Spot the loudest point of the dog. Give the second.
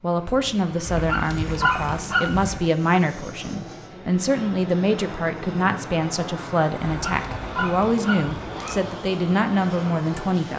2 s.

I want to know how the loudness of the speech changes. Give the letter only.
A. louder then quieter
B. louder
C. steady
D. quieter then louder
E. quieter
C.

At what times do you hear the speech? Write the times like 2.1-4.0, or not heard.
0.0-10.5.